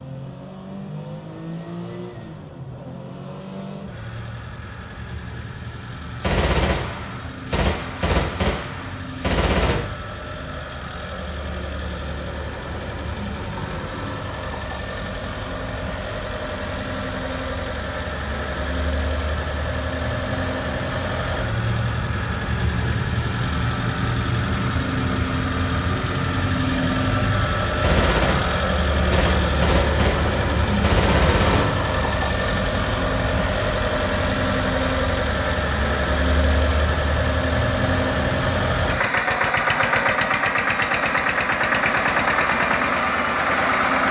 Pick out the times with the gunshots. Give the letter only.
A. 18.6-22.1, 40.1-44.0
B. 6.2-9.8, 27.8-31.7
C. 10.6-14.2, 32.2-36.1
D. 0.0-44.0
B.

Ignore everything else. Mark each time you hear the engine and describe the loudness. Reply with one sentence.
You can hear the engine from 0.0 to 44.0 s, getting louder.